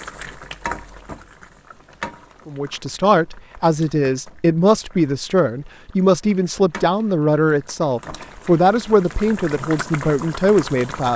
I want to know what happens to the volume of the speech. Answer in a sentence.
The loudness of the speech stays about the same.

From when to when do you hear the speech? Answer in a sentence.
You can hear the speech from 2.5 to 11.1 s.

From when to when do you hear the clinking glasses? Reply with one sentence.
The clinking glasses can't be heard in this clip.